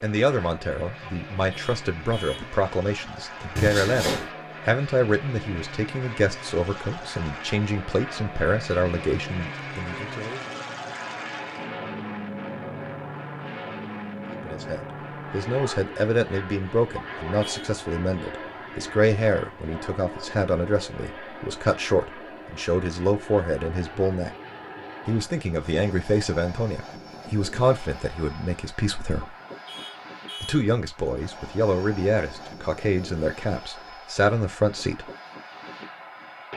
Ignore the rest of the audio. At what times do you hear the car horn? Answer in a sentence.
You can hear the car horn from 1.1 to 2.5 s, from 16.9 to 17.6 s and from 29.2 to 30.6 s.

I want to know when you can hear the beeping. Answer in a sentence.
The beeping can be heard from 3.5 to 4.3 s.